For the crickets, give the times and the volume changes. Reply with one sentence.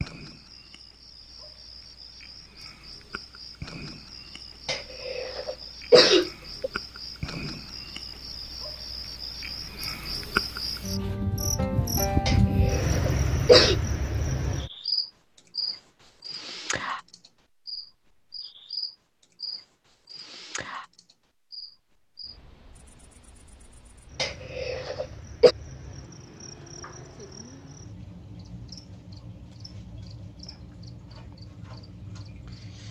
You can hear the crickets from 0.0 to 32.8 s, getting louder then quieter.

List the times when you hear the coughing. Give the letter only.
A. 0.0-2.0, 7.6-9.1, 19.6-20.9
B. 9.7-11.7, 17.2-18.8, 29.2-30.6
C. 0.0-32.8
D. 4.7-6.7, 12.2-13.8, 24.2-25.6
D.